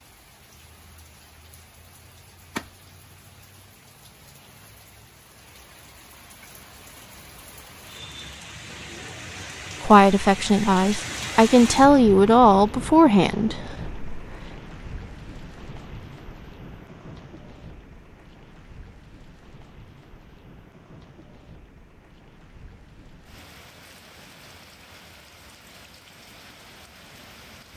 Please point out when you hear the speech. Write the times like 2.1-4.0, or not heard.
9.8-14.3.